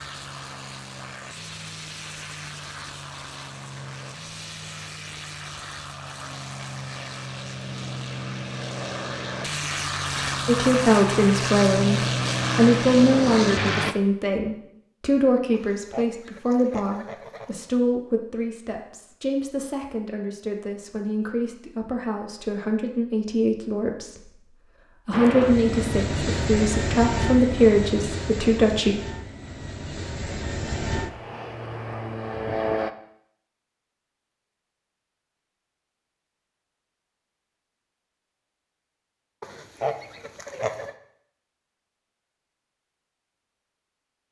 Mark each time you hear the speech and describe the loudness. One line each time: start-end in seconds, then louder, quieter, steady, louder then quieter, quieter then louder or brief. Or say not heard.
10.4-28.9 quieter then louder.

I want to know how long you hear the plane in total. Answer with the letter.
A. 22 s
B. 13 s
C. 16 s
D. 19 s
A.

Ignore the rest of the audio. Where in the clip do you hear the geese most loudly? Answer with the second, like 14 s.
40 s.